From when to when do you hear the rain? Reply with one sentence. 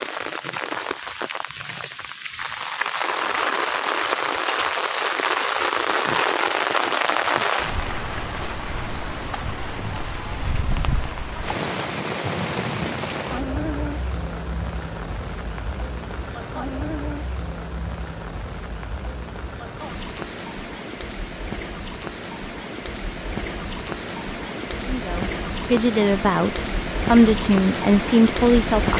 The rain can be heard from 0.0 to 28.9 s.